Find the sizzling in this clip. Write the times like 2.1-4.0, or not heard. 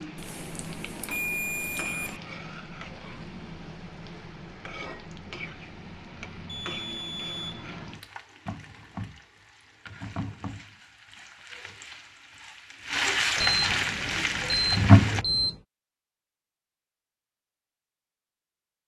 0.0-15.2.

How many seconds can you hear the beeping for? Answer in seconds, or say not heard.
6 s.